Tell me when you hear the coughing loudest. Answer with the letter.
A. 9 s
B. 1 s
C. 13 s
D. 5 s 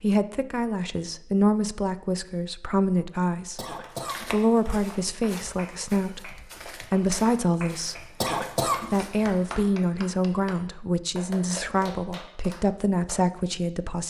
A.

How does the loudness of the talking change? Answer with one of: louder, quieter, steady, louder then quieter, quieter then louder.
steady.